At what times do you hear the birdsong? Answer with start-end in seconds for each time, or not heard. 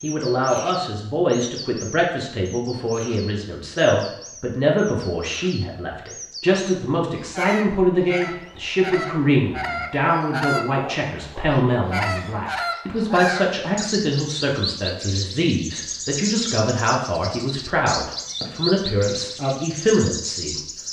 0.0-20.8.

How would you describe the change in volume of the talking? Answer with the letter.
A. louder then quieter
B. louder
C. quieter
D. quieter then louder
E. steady
E.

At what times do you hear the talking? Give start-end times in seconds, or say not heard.
0.0-20.6.